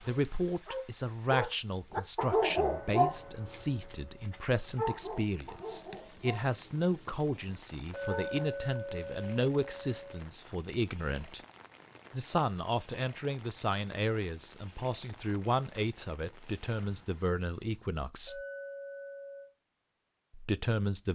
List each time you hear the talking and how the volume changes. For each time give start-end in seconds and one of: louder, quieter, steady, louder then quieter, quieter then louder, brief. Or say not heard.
0.1-11.4 steady
12.1-18.4 steady
20.3-21.1 brief.